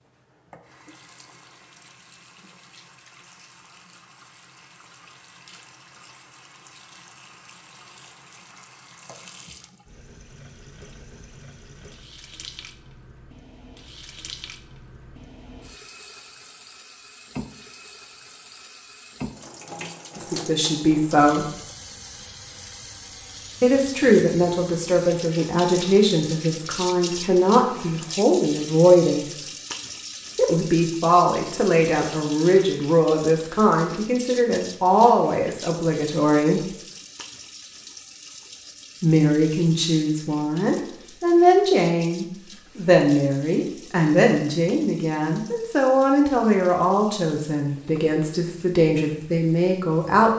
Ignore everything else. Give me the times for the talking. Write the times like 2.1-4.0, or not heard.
20.1-21.4, 23.6-29.3, 30.4-36.7, 39.0-50.3.